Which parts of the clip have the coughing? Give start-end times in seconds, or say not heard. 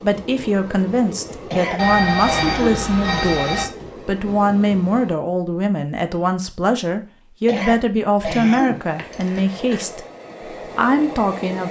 1.5-2.9, 7.5-8.8.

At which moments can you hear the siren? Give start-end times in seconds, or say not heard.
not heard.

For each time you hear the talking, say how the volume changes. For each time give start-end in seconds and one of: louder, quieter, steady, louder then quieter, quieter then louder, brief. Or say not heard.
0.0-10.0 steady
10.8-11.6 brief.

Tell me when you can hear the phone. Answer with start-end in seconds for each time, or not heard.
1.8-3.6, 8.9-9.8.